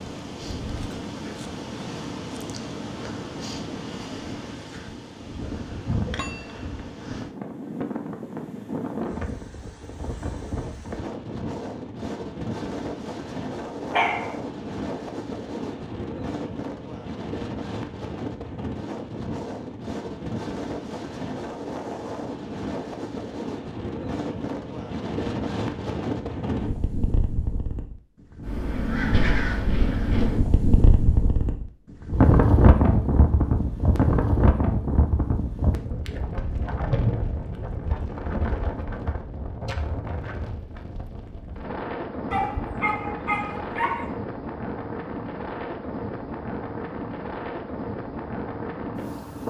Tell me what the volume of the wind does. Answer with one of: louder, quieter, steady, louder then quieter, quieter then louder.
louder then quieter.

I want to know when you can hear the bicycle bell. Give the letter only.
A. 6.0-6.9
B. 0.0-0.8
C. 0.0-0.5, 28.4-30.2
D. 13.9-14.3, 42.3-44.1
A.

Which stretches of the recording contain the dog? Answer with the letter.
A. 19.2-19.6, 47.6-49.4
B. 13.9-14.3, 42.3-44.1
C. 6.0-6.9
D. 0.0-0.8
B.